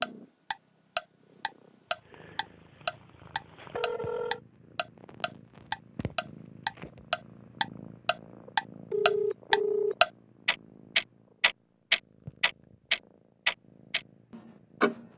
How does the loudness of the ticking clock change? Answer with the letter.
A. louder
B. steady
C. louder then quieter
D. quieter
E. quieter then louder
A.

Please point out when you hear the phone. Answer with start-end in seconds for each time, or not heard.
3.8-4.4, 8.9-9.9.